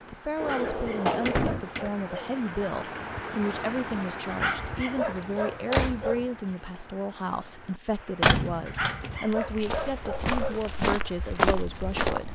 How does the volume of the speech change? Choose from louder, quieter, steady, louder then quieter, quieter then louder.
steady.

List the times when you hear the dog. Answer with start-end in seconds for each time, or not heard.
0.3-2.4, 4.3-6.3, 8.7-10.7.